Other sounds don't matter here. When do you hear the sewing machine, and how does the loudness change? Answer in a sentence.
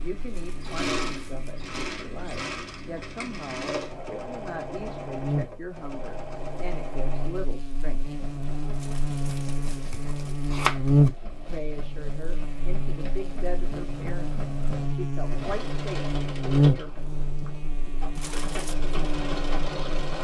You can hear the sewing machine from 0.0 to 20.1 s, getting quieter then louder.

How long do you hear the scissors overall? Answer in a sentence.
You can hear the scissors for 2 seconds altogether.